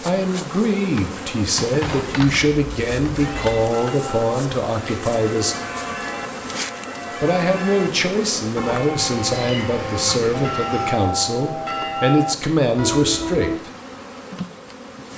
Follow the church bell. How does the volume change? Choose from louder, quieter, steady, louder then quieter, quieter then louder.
louder.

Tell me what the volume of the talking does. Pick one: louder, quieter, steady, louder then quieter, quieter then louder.
steady.